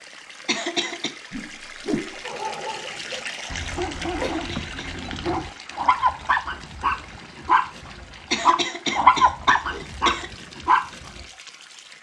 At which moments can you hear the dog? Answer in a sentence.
You can hear the dog from 2.2 to 11.2 s.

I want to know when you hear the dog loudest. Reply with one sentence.
The volume of the dog peaks at 9 seconds.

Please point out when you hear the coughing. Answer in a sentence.
You can hear the coughing from 0.5 to 1.1 s, from 4.2 to 5.0 s and from 8.3 to 10.3 s.